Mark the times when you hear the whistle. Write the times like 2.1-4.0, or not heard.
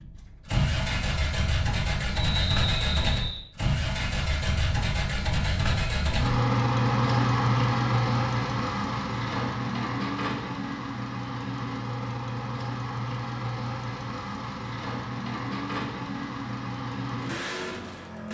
2.3-3.5.